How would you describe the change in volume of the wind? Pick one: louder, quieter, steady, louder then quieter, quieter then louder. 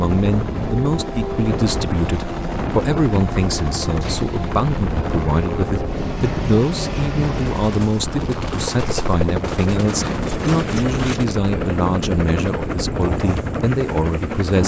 steady.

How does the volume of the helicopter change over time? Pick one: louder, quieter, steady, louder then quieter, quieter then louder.
steady.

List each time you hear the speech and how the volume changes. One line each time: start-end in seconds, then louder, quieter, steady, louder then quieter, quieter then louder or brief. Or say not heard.
0.0-14.6 steady.